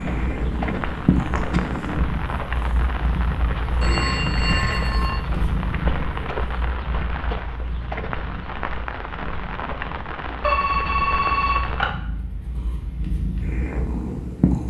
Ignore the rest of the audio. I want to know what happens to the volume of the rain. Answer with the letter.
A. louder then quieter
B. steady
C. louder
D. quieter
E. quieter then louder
B.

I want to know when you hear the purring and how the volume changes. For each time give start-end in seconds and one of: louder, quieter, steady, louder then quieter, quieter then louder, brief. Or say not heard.
0.0-14.6 quieter then louder.